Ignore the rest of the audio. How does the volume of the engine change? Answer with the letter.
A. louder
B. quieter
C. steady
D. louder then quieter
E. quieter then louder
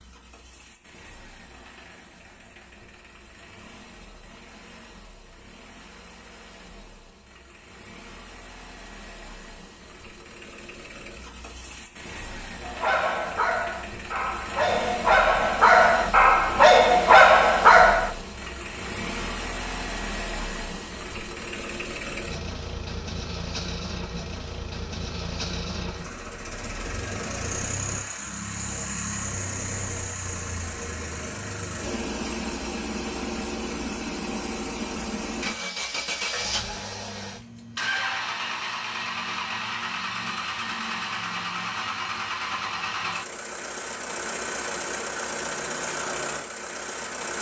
A.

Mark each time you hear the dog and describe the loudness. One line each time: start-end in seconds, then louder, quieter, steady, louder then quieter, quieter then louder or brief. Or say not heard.
12.6-18.1 louder.